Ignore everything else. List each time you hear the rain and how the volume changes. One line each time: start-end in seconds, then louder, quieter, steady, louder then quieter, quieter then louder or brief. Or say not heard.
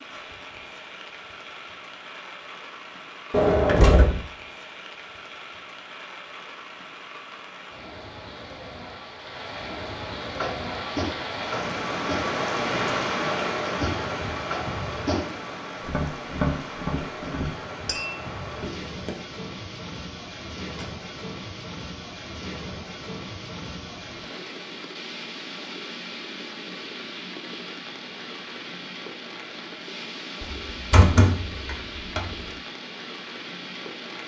0.0-34.2 louder then quieter.